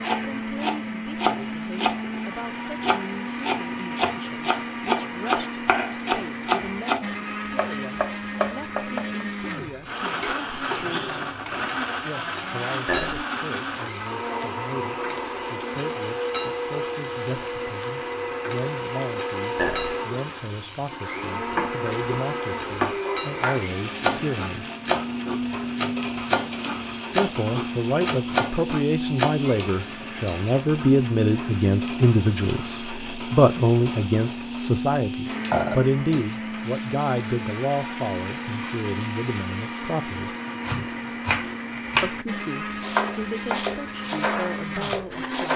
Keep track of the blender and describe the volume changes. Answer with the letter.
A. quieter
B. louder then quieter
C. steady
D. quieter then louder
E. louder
C.